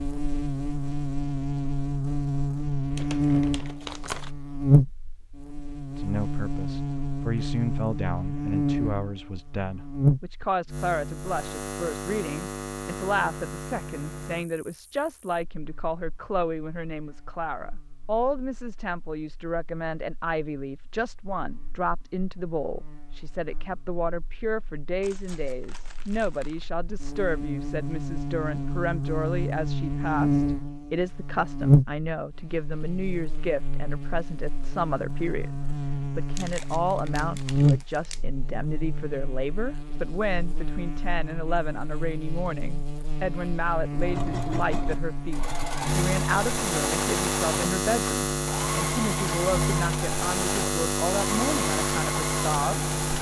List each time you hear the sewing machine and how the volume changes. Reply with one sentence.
The sewing machine can be heard from 44.0 to 53.1 s, at a steady volume.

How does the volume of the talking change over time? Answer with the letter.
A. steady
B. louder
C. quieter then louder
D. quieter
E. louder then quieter
A.